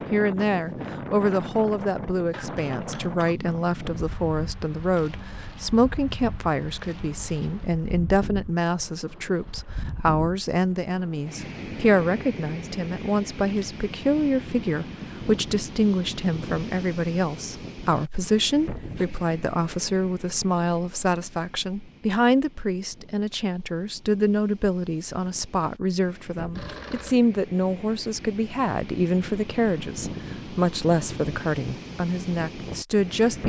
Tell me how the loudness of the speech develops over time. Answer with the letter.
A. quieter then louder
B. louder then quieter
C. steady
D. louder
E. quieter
C.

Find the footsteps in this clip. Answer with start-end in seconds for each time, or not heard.
not heard.